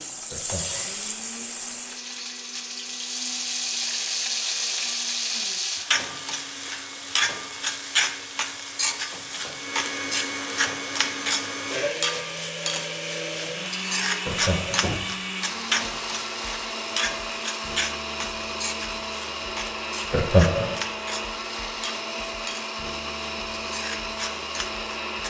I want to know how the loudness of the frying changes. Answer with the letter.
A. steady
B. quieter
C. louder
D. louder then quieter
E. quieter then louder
B.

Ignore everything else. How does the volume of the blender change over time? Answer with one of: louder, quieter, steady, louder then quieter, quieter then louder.
louder.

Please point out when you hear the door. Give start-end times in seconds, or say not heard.
14.8-15.7.